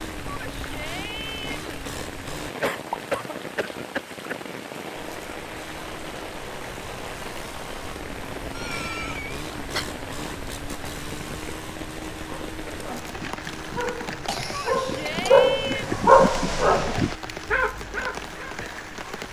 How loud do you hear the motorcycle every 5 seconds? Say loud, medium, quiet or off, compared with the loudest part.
loud, loud, loud, medium.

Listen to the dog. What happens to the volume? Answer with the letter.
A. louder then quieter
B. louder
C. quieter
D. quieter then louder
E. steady
A.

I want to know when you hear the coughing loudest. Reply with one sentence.
The loudest moment of the coughing is at 3 seconds.